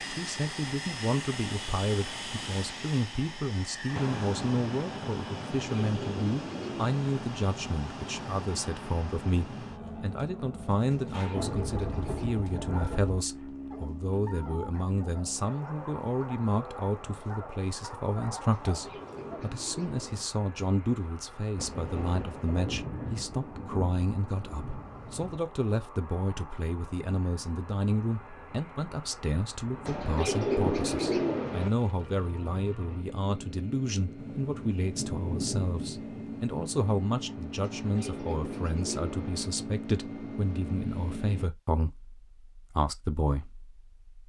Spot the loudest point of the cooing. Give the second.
31 s.